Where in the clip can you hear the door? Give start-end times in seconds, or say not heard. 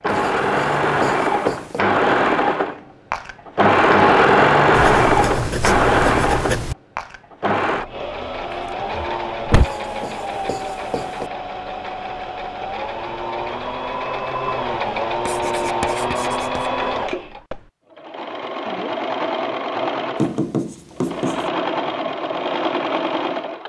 8.5-9.7.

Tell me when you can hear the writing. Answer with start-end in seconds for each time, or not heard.
0.1-1.8, 4.7-6.8, 9.6-11.3, 15.2-16.7, 20.2-21.5.